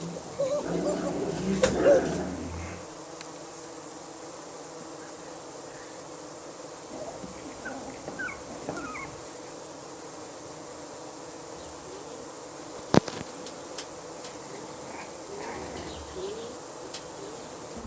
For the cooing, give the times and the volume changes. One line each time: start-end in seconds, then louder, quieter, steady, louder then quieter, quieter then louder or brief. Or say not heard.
0.0-2.2 brief
11.6-17.8 quieter then louder.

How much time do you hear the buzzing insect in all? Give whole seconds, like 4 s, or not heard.
18 s.